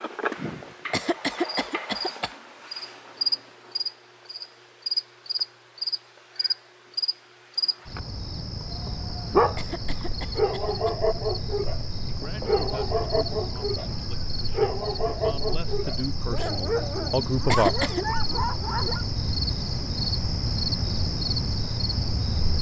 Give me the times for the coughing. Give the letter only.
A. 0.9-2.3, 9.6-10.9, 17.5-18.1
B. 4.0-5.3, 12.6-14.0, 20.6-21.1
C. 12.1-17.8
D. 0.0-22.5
A.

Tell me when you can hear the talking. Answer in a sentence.
The talking can be heard from 12.1 to 17.8 s.